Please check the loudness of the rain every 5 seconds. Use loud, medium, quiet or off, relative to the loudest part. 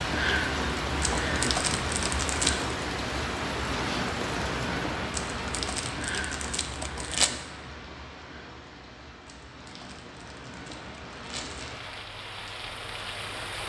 loud, medium, medium.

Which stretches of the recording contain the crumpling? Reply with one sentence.
You can hear the crumpling from 1.0 to 2.8 s, from 5.1 to 7.3 s and from 9.2 to 11.8 s.